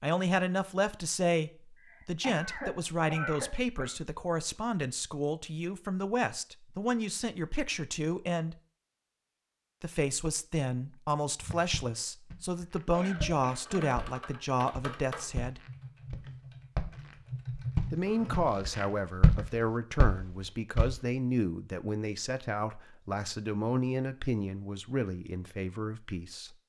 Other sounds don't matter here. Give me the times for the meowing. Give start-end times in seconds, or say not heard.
not heard.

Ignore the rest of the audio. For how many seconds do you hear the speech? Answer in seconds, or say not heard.
23 s.